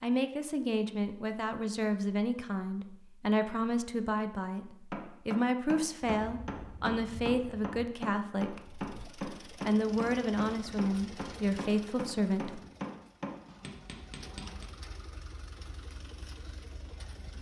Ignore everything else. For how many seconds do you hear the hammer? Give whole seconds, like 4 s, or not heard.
10 s.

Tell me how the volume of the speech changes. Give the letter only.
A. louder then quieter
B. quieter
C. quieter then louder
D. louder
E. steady
E.